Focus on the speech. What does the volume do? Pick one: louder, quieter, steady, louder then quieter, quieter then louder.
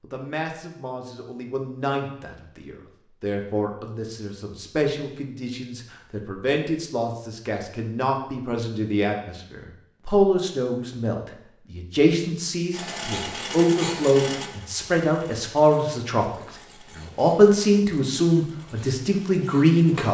louder.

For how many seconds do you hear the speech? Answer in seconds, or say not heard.
20 s.